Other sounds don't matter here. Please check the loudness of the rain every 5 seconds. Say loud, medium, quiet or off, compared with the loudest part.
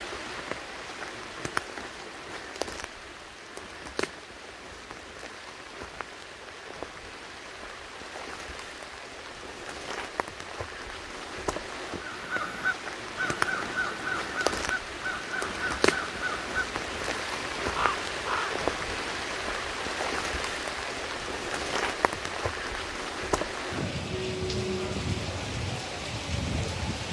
medium, medium, loud, loud, loud, loud.